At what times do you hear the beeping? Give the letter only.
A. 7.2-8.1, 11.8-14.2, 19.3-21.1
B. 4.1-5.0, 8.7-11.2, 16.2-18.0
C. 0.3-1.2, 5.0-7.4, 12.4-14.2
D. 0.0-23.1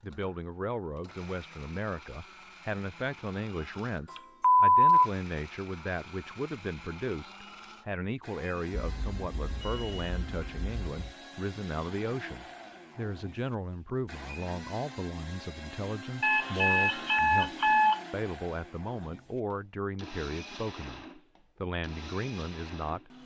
B.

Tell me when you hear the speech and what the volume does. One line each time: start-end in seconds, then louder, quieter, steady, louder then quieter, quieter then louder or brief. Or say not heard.
0.0-23.1 steady.